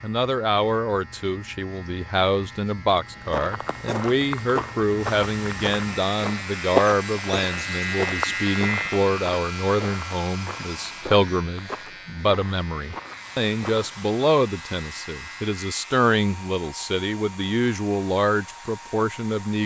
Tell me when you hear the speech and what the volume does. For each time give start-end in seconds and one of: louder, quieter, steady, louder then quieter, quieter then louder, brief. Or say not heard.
0.0-19.6 steady.